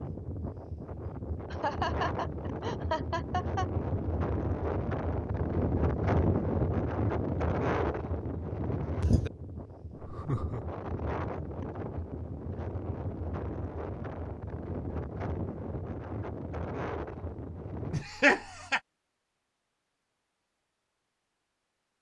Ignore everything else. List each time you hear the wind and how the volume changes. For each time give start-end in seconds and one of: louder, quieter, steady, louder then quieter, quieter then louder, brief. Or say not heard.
0.0-18.1 louder then quieter.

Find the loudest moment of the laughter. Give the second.
18 s.